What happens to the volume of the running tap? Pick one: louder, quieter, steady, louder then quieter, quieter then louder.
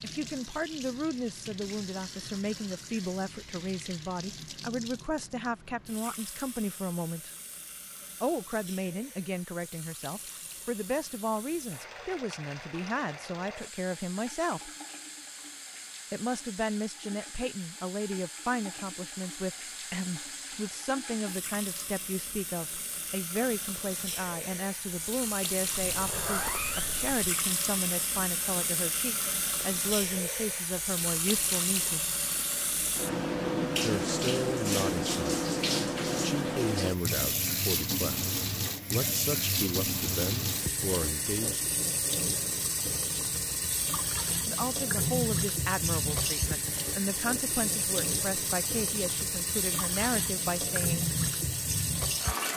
louder.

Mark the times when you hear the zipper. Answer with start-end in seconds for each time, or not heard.
25.7-27.2.